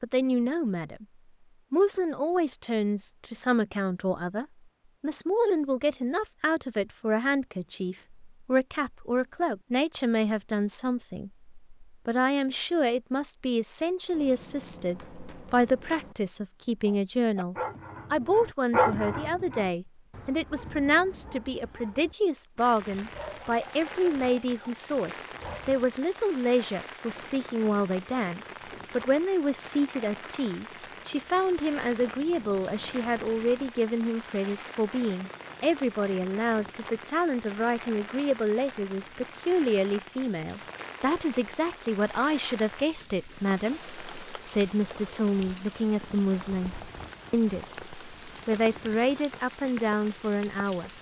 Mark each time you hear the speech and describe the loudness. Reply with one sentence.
You can hear the speech briefly from 0.0 to 1.1 s; and from 1.7 to 50.9 s, at a steady volume.